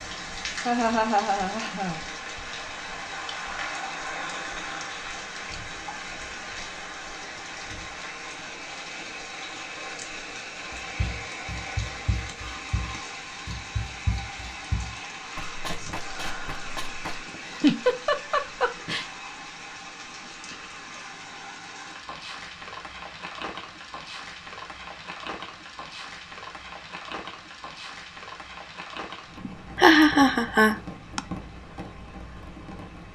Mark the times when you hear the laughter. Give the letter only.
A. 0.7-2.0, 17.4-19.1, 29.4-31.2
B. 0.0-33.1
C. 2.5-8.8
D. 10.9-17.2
A.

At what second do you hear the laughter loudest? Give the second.
30 s.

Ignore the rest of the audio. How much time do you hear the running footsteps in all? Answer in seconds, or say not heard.
6 s.